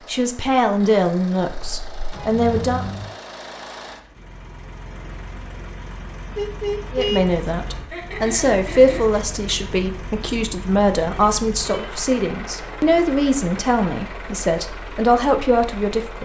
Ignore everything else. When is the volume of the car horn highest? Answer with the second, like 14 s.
7 s.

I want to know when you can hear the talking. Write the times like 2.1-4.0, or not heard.
0.1-2.9, 6.9-16.2.